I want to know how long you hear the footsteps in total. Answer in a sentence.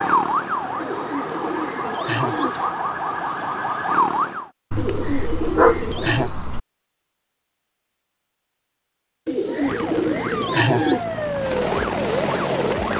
The footsteps can't be heard in this clip.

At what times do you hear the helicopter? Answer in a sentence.
You can hear the helicopter from 9.6 to 12.9 s.